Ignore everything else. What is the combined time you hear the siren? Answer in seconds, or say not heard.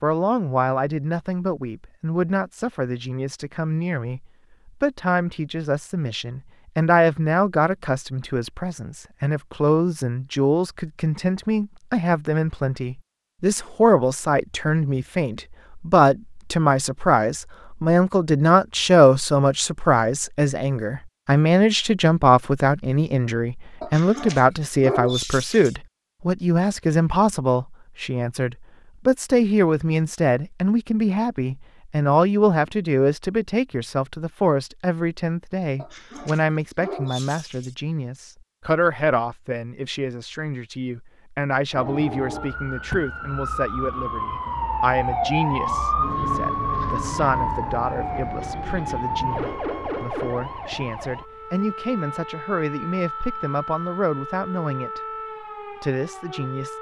15 s.